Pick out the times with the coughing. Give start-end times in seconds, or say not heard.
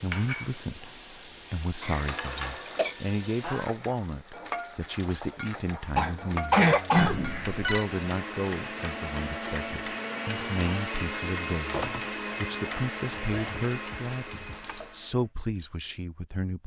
1.8-3.0, 6.0-7.2, 13.2-13.6.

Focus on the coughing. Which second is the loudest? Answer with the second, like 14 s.
7 s.